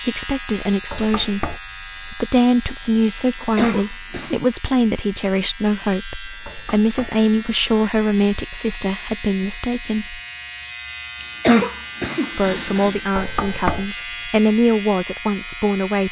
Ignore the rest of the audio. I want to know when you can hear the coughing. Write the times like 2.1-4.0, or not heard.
3.3-4.4, 11.2-13.0.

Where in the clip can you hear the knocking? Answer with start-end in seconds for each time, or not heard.
0.9-1.6, 6.5-7.2, 13.2-13.9.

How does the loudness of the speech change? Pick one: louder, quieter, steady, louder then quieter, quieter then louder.
steady.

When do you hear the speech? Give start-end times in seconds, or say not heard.
0.0-10.2, 12.3-16.0.